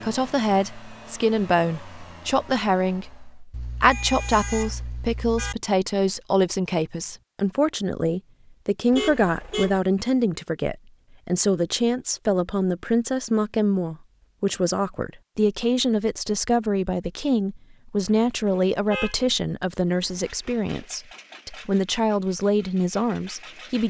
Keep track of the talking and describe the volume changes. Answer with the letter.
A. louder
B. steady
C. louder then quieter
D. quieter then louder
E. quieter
B.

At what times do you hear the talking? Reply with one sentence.
The talking can be heard from 0.0 to 23.8 s.